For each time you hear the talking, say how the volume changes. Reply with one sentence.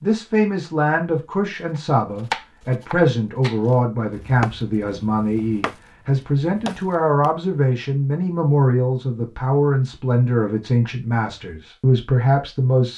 You can hear the talking from 0.0 to 12.9 s, at a steady volume.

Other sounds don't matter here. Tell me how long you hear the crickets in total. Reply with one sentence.
You can't hear the crickets here.